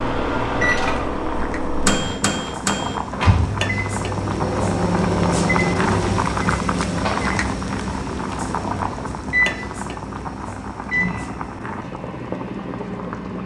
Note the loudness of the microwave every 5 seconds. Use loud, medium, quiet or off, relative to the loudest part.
loud, loud, medium.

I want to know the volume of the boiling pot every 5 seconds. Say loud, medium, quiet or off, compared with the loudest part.
loud, loud, medium.